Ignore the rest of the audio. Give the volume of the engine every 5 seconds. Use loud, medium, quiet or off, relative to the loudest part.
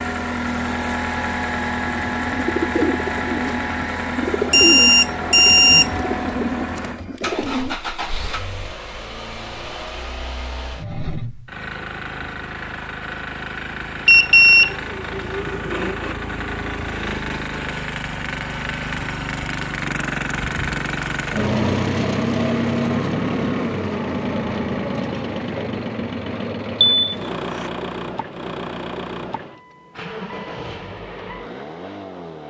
loud, medium, medium, medium, loud, medium, medium.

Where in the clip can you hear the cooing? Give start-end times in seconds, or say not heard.
1.9-7.8.